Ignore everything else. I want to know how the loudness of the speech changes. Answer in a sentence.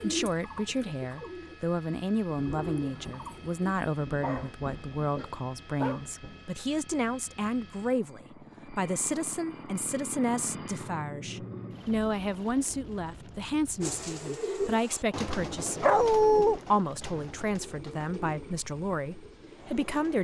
The volume of the speech stays about the same.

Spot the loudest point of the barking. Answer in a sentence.
The loudest moment of the barking is at 16 seconds.